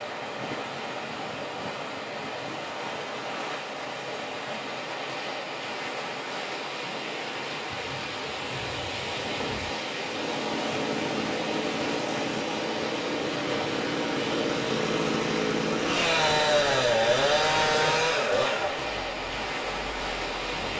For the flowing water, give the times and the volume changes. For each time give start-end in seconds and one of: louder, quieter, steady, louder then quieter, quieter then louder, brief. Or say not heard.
0.0-20.7 steady.